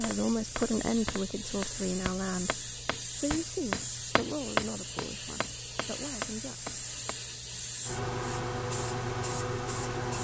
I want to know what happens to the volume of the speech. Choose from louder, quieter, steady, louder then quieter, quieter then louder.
quieter.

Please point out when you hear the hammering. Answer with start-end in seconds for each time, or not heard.
0.0-7.2.